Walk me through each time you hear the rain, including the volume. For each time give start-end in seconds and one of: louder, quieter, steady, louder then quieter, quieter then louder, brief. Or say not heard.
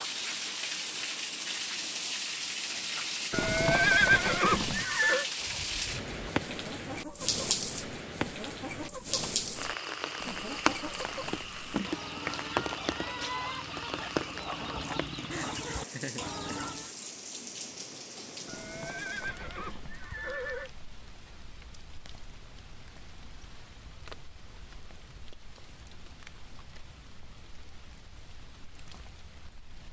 0.0-29.8 quieter.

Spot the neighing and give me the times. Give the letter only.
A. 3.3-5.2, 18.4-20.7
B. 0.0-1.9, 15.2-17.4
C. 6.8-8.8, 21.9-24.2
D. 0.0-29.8
A.